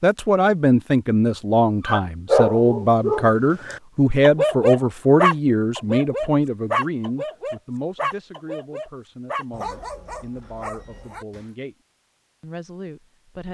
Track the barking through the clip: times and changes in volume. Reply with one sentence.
The barking can be heard from 1.9 to 11.4 s, getting quieter.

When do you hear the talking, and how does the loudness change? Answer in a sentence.
The talking can be heard from 0.0 to 11.8 s, getting quieter; and briefly from 12.4 to 13.4 s.